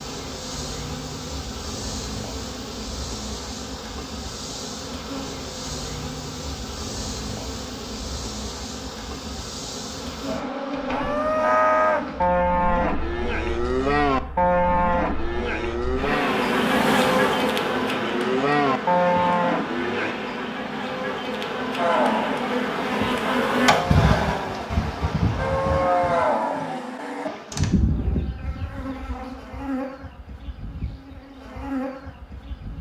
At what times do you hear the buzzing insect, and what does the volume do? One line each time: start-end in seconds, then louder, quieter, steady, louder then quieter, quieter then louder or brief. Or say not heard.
0.0-32.7 louder then quieter.